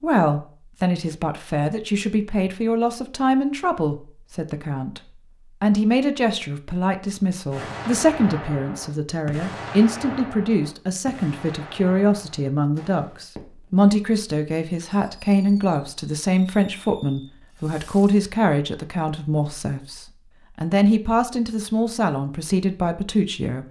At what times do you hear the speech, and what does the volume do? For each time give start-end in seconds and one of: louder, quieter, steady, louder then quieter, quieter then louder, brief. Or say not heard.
0.0-23.6 steady.